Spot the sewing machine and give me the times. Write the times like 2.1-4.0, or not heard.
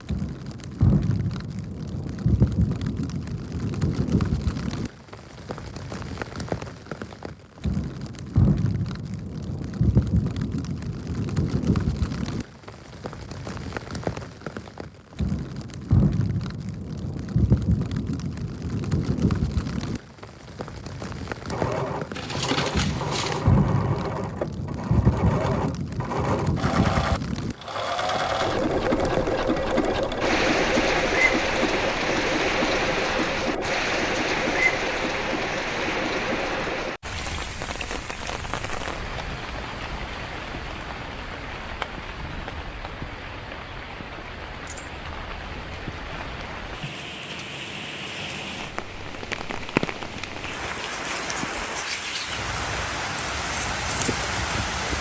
21.5-37.0.